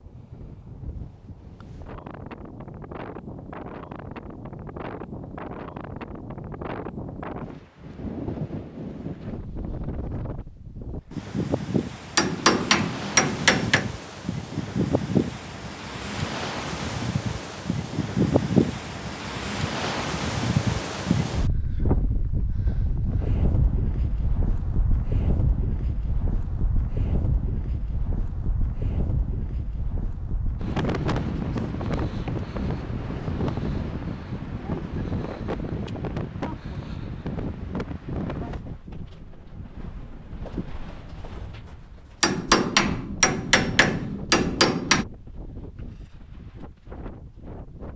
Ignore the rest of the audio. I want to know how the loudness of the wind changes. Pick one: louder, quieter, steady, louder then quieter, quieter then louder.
louder then quieter.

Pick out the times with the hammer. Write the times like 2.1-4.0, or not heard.
12.2-13.9, 42.2-45.0.